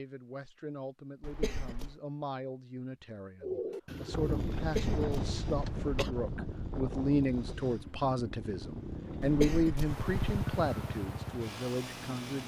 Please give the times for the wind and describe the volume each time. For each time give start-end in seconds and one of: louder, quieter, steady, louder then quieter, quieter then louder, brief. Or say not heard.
4.1-12.4 quieter.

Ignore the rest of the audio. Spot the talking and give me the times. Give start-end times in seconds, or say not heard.
0.0-12.4.